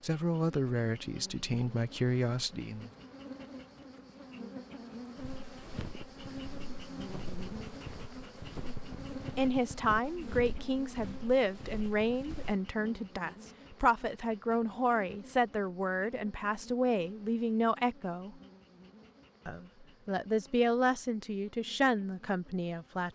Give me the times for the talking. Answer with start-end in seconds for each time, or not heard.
0.0-2.9, 9.3-18.4, 19.4-23.1.